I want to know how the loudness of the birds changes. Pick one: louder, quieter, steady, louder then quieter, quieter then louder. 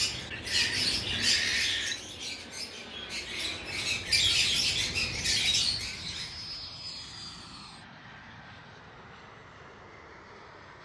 quieter then louder.